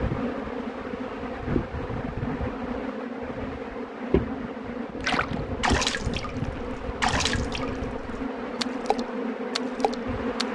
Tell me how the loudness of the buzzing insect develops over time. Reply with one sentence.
The volume of the buzzing insect stays about the same.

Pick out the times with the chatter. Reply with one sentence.
You can't hear the chatter here.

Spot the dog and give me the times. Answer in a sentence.
The dog can't be heard in this clip.